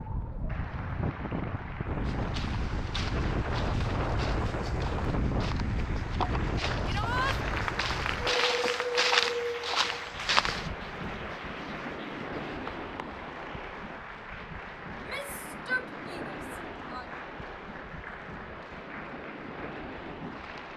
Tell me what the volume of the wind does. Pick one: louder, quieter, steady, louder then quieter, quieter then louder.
quieter.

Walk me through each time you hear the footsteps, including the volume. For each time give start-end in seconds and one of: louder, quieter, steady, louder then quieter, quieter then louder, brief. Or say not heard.
2.0-10.7 louder.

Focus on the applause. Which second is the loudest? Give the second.
8 s.